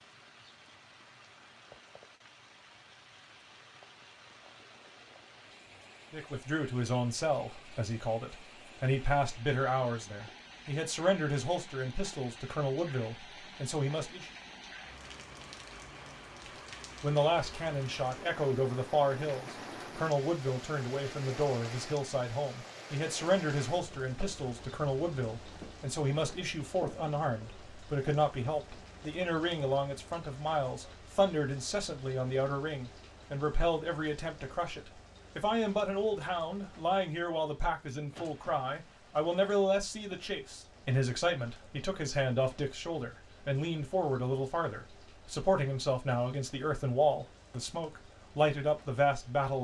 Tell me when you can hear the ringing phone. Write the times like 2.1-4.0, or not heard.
not heard.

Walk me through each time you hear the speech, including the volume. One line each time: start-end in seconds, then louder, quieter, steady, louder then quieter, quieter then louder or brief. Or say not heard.
6.1-14.3 steady
17.0-49.6 steady.